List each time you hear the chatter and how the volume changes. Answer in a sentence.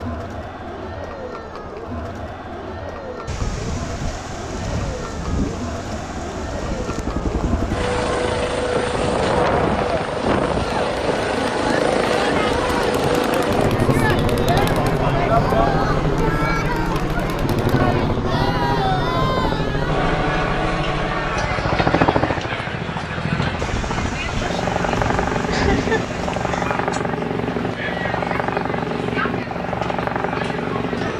You can hear the chatter from 0.0 to 31.1 s, getting louder then quieter.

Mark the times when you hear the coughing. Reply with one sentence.
The coughing can be heard from 25.5 to 26.7 s.